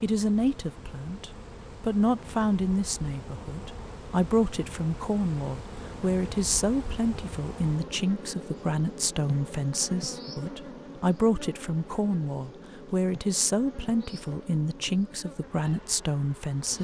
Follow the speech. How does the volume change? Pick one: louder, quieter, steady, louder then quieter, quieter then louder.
steady.